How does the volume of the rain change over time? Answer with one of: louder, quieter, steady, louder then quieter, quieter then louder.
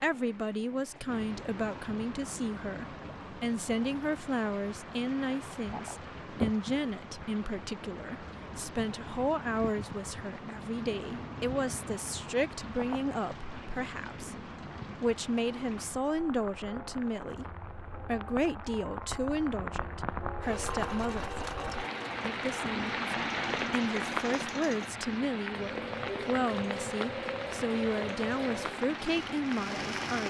louder.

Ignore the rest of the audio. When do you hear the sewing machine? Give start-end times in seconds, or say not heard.
20.4-30.2.